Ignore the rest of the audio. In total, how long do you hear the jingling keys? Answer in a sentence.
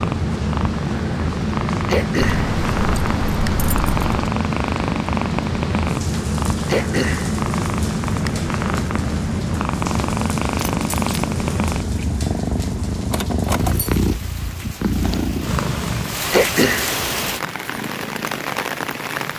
The jingling keys can be heard for 4 seconds in total.